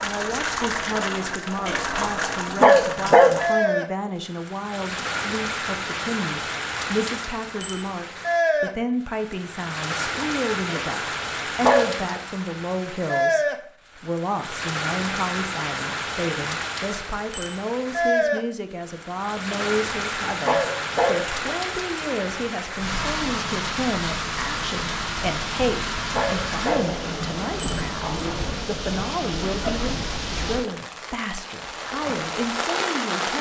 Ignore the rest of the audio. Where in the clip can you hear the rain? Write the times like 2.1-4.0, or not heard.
0.0-33.3.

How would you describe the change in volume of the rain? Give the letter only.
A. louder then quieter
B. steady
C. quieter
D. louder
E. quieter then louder
B.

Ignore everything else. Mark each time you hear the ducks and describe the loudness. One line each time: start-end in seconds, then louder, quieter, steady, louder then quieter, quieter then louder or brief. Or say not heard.
not heard.